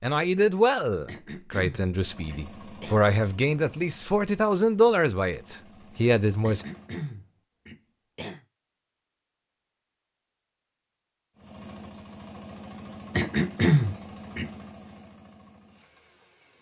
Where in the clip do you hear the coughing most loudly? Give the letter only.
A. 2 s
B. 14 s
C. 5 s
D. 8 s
B.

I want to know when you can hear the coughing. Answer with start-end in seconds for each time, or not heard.
1.1-3.0, 6.4-8.4, 13.2-14.4.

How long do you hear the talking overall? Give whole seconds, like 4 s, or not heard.
7 s.